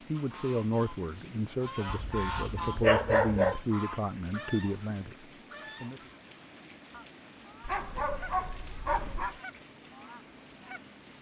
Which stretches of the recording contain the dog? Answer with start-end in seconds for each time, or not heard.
1.9-3.5, 7.6-9.4.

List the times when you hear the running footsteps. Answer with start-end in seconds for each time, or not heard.
not heard.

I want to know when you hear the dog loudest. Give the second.
3 s.